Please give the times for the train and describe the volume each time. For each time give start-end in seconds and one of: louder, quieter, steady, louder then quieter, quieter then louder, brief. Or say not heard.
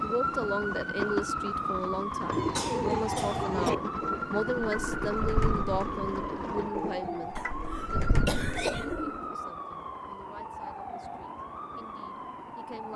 0.0-12.9 quieter.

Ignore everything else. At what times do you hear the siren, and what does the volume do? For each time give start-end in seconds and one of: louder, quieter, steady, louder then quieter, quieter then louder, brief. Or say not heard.
0.0-12.9 quieter.